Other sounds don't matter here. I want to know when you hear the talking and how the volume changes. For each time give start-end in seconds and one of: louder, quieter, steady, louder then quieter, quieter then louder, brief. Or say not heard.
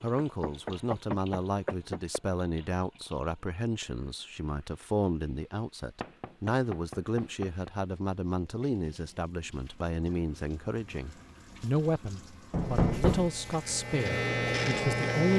0.0-15.3 steady.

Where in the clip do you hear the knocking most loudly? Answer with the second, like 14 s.
13 s.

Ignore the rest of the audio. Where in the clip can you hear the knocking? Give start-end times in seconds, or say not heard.
0.1-2.2, 6.0-7.7, 12.5-13.3.